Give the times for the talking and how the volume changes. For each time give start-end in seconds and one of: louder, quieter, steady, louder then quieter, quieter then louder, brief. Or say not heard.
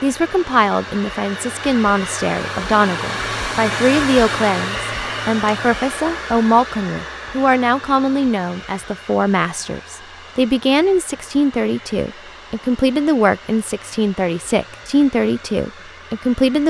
0.0-16.6 steady.